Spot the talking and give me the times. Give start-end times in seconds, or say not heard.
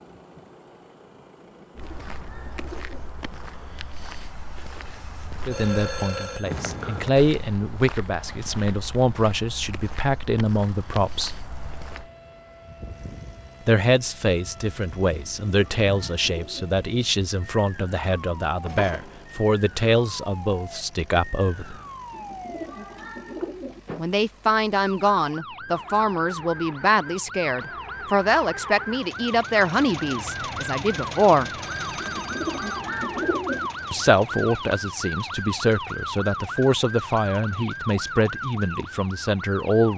5.5-11.3, 13.7-21.8, 23.9-31.5, 33.9-39.9.